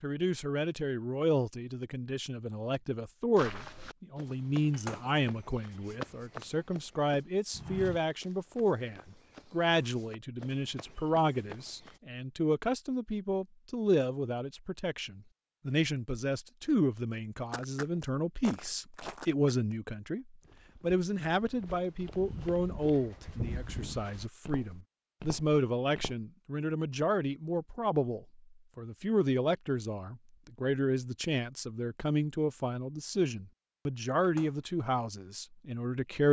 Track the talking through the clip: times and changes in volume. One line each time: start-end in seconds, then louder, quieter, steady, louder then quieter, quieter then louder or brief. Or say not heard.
0.0-36.2 steady.